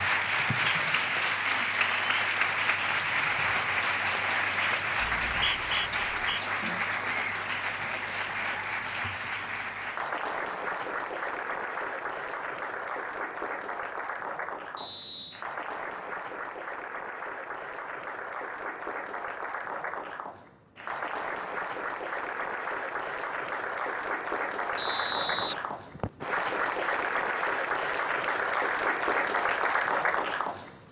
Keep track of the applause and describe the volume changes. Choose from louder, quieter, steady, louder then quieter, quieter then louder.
quieter then louder.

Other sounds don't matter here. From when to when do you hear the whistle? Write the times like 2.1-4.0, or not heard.
5.0-6.4, 14.8-15.4, 24.8-26.2.